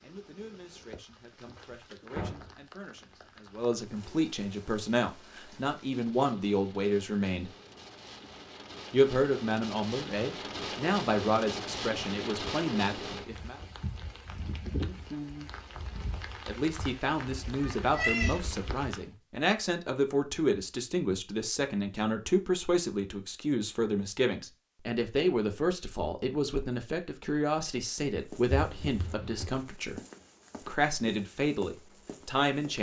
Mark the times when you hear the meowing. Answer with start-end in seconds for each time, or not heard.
17.6-18.4.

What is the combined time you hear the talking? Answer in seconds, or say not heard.
28 s.